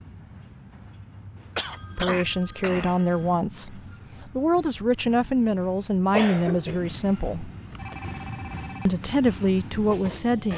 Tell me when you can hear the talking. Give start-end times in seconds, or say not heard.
1.9-7.5, 8.8-10.5.